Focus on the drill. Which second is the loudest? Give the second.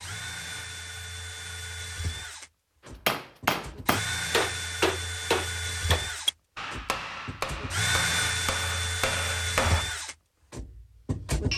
8 s.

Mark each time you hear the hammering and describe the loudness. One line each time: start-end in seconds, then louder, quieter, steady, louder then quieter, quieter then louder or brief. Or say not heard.
3.0-9.8 quieter.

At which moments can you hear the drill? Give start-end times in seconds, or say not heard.
0.0-11.5.